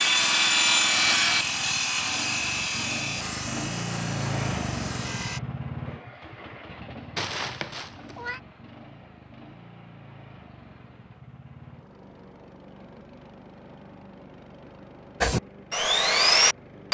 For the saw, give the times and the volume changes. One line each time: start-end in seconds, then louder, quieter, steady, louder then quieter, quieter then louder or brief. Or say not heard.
0.0-5.4 quieter
15.2-16.8 brief.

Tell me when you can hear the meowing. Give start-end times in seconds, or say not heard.
7.2-8.4.